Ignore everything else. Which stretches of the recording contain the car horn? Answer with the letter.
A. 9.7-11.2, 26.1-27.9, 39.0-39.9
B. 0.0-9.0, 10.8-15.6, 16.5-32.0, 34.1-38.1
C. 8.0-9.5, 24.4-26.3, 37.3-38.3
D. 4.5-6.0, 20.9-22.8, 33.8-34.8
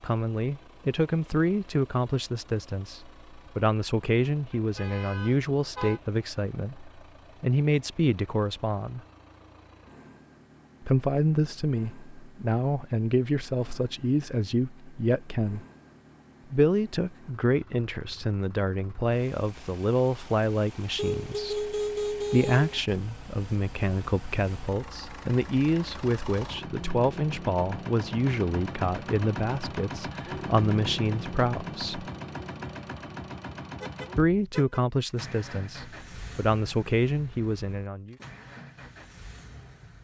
D.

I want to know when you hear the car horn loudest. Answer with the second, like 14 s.
22 s.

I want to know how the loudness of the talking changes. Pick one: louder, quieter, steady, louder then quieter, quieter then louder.
steady.